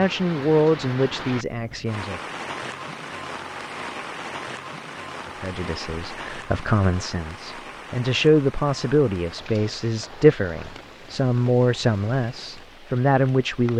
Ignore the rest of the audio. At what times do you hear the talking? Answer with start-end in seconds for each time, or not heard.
0.0-2.2, 5.2-13.7.